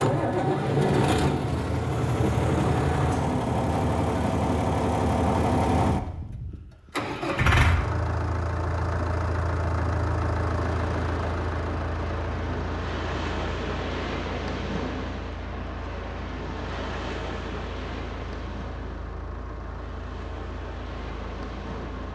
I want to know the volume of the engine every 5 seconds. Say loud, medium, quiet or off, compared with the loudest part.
loud, loud, medium, quiet, quiet.